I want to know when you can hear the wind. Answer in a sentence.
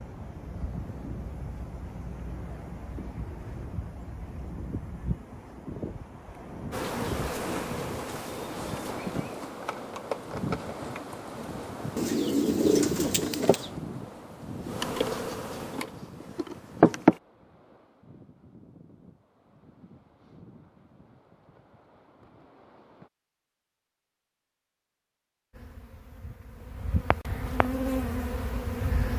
The wind can be heard from 0.0 to 23.1 s.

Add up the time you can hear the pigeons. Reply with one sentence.
You can hear the pigeons for 2 seconds altogether.